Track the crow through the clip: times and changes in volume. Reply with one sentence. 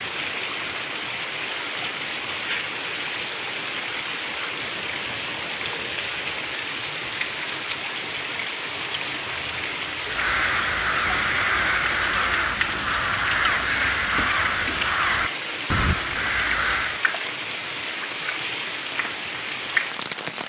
The crow can be heard from 10.0 to 17.1 s, at a steady volume.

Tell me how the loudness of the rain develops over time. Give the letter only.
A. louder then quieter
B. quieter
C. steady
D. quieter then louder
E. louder
C.